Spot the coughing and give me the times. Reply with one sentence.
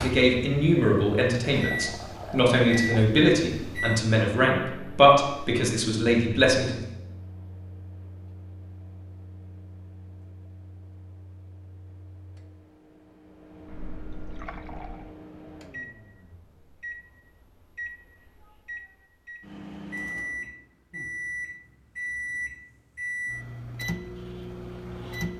The coughing can't be heard in this clip.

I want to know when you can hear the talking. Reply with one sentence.
You can hear the talking from 0.0 to 6.8 s.